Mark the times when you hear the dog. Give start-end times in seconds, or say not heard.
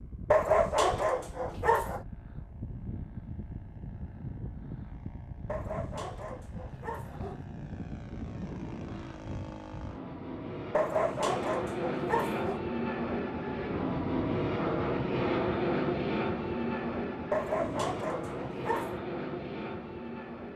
0.3-2.0, 5.5-7.4, 10.7-12.6, 17.3-19.0.